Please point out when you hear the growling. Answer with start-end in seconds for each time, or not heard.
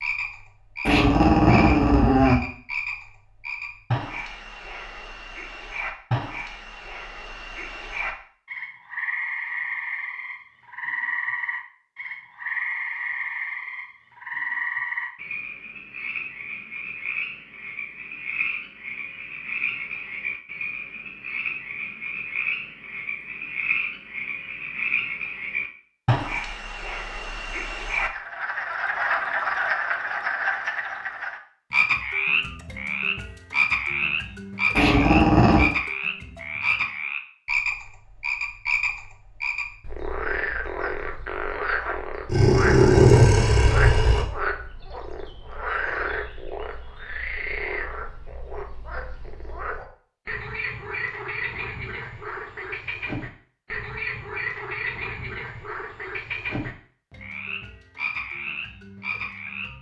0.8-2.4, 34.8-35.7, 42.2-44.2.